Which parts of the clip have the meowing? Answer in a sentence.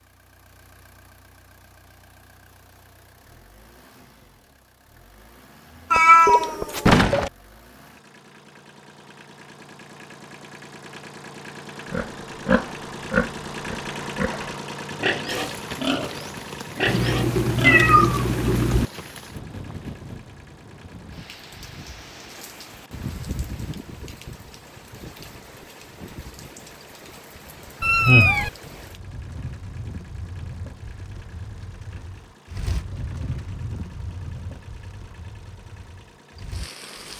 The meowing can be heard from 5.9 to 7.3 s, from 16.9 to 18.9 s and from 27.8 to 28.5 s.